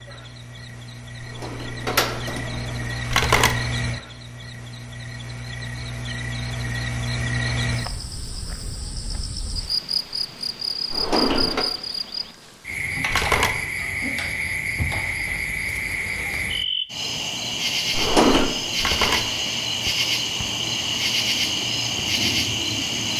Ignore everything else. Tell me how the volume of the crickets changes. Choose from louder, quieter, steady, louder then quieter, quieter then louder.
louder.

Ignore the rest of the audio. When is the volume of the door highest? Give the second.
18 s.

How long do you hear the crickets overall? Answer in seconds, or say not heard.
23 s.